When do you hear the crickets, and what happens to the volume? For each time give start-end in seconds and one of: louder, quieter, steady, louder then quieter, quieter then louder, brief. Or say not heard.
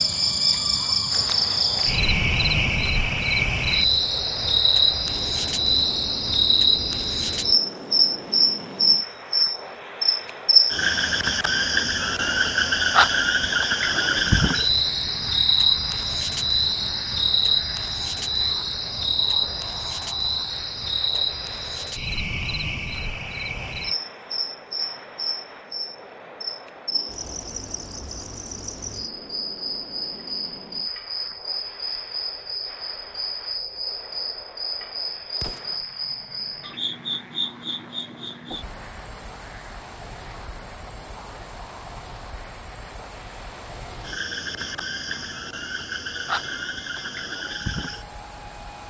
0.0-48.8 quieter.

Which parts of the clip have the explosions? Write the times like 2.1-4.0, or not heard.
35.4-35.9.